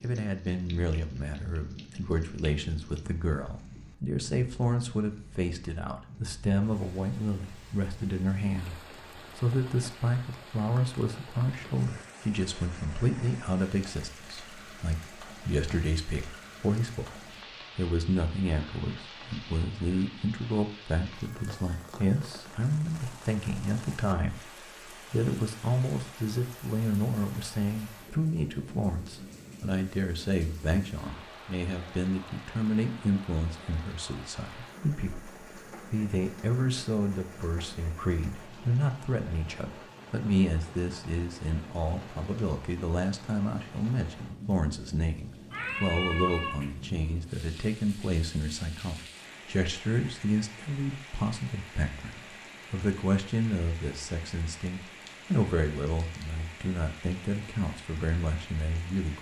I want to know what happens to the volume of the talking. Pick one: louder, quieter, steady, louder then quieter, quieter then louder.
steady.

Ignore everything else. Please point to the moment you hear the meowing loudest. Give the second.
46 s.